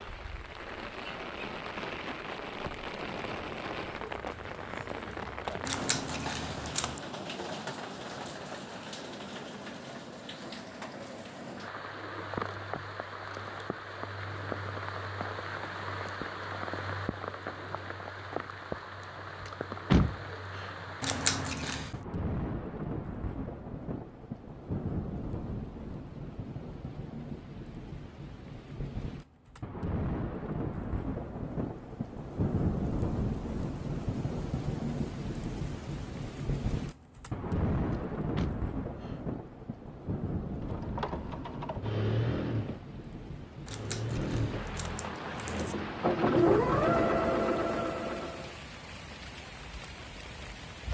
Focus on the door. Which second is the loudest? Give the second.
20 s.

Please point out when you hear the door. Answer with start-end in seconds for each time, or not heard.
19.4-20.7, 37.9-39.1.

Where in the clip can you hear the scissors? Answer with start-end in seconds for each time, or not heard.
5.7-7.0, 21.0-22.0, 43.6-45.8.